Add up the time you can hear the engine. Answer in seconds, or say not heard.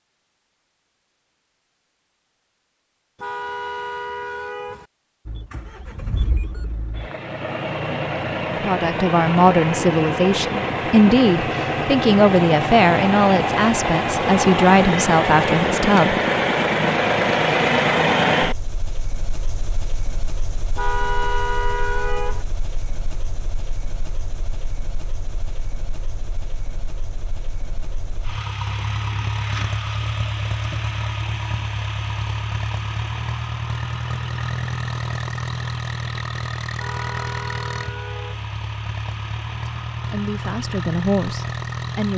37 s.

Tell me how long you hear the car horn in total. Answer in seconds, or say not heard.
5 s.